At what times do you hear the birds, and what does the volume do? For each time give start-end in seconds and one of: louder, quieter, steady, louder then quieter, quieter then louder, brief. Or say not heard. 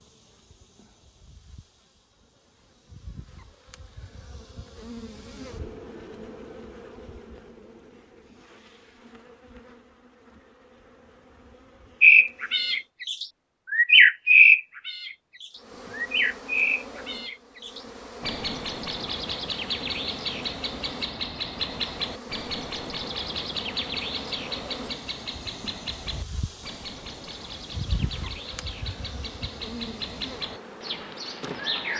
12.0-31.9 quieter.